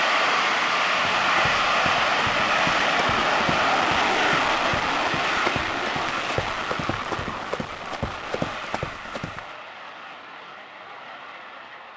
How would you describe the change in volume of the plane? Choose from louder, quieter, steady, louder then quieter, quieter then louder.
quieter.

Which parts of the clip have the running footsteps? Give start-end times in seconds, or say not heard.
1.1-9.5.